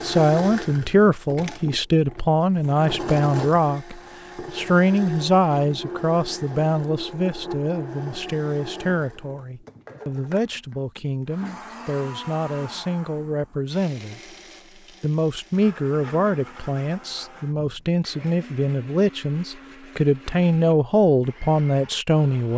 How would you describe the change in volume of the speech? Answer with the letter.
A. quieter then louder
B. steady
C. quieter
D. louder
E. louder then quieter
A.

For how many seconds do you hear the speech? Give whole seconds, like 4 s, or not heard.
22 s.